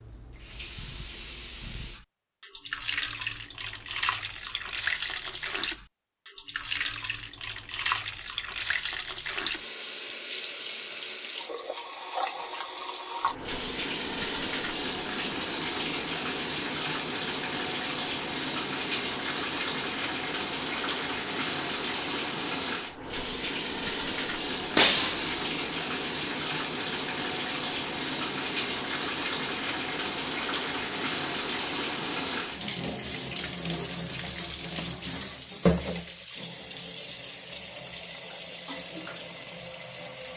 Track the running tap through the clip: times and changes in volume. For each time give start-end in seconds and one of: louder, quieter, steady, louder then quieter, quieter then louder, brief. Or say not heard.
0.0-40.3 steady.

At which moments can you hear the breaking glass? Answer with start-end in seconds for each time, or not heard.
24.8-25.4.